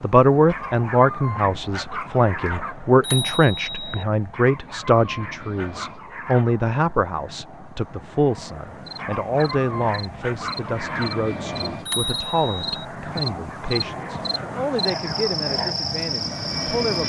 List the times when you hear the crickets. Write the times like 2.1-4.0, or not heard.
8.8-17.0.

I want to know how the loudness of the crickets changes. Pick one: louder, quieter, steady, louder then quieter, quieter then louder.
louder.